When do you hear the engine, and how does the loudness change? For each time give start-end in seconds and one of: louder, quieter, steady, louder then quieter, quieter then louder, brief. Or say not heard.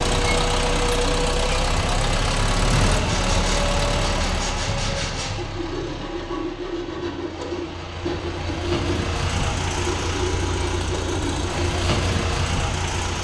0.0-13.2 quieter then louder.